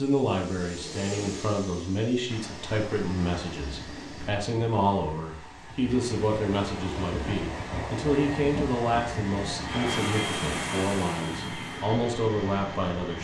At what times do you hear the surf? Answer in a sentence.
You can hear the surf from 2.2 to 13.1 s.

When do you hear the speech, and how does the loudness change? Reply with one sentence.
The speech can be heard from 0.0 to 13.1 s, at a steady volume.